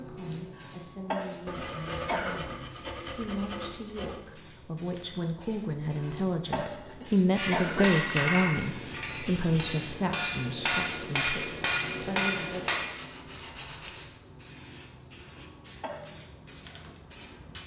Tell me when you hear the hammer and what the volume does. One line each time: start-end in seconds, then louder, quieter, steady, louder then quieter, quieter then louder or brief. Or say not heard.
7.3-12.8 quieter then louder.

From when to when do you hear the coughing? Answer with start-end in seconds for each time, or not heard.
0.6-2.4, 6.0-7.9, 15.2-16.1.